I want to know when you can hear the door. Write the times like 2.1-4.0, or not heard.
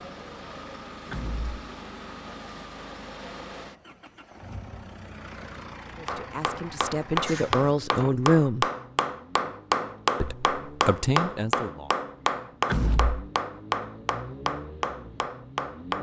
1.1-1.6, 7.2-8.2, 12.7-13.3.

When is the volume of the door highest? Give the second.
13 s.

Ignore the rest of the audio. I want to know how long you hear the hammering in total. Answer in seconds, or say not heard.
10 s.